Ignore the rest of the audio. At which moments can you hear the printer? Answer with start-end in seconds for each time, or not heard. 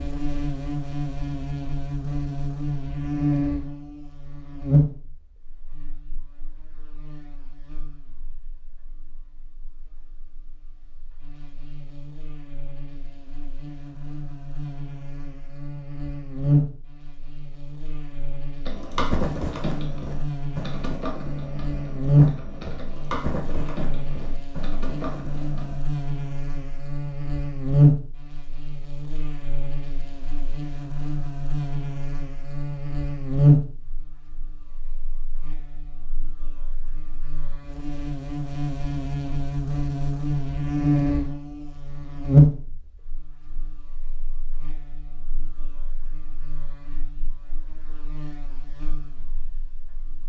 not heard.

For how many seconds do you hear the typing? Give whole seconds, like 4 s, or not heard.
7 s.